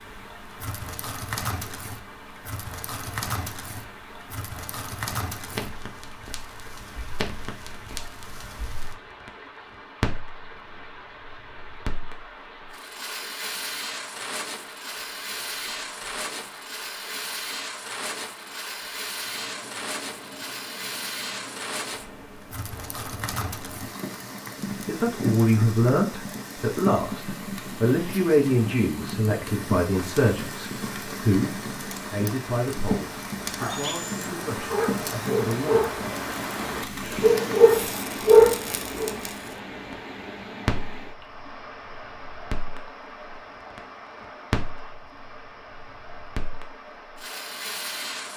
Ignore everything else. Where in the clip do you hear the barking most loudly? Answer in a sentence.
The loudest moment of the barking is at 38 seconds.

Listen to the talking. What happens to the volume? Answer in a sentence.
The loudness of the talking goes down.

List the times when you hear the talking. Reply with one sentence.
The talking can be heard from 24.9 to 36.0 s.